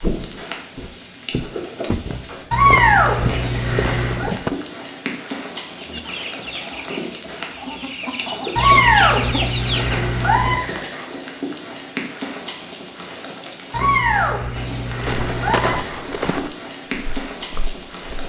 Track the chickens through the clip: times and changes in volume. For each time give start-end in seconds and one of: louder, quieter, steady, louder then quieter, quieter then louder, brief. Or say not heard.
5.8-10.0 quieter then louder.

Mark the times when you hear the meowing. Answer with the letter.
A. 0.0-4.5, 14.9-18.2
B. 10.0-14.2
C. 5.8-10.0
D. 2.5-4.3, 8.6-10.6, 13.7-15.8
D.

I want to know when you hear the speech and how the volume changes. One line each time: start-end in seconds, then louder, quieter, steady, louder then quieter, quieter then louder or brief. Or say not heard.
not heard.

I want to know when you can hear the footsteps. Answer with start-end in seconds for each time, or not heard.
0.0-4.5, 14.9-18.2.